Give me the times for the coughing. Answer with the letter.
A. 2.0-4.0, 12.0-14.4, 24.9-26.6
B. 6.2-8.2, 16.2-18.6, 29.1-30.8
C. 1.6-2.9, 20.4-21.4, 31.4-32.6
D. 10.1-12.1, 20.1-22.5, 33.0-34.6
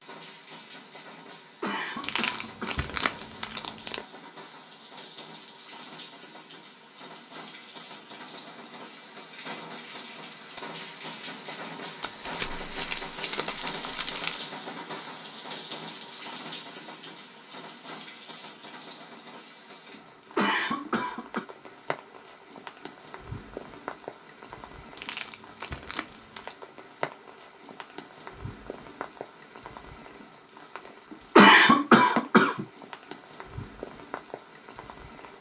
C.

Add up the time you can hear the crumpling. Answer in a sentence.
You can hear the crumpling for 6 seconds altogether.